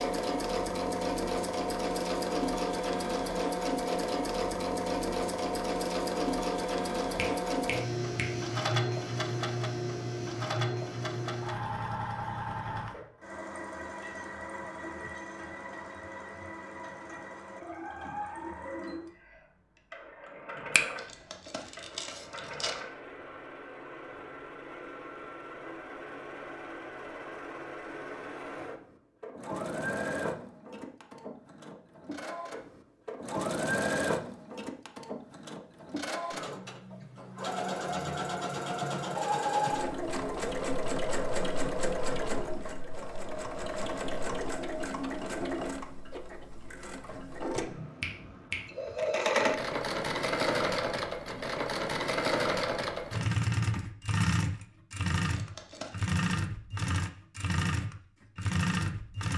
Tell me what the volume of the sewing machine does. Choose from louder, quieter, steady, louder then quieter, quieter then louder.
quieter then louder.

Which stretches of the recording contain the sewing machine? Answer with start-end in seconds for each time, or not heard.
0.0-59.3.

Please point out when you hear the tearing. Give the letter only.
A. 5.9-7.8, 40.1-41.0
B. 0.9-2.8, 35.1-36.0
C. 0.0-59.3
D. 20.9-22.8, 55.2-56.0
D.